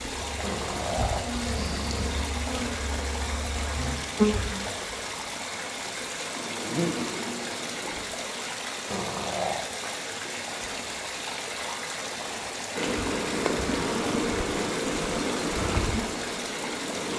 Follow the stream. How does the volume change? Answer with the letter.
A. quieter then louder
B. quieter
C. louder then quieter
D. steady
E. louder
D.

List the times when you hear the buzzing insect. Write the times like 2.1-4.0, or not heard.
0.0-4.7, 6.3-8.1, 12.8-17.1.